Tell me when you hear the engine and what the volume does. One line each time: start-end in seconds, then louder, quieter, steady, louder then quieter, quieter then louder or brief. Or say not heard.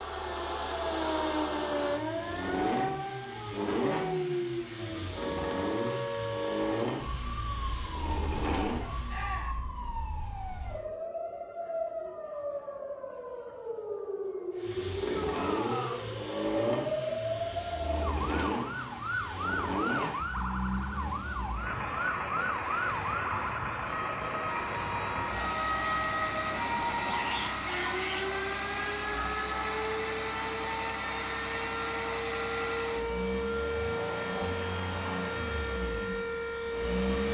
0.0-9.4 steady
14.6-37.2 steady.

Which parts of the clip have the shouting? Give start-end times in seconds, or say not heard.
9.1-9.6, 15.1-16.0, 27.1-28.2.